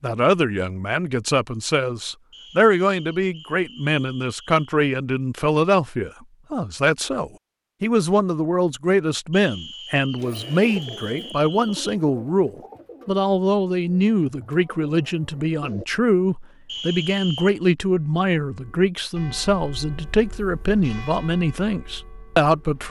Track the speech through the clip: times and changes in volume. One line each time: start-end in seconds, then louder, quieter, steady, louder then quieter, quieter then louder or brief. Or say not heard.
0.0-22.8 steady.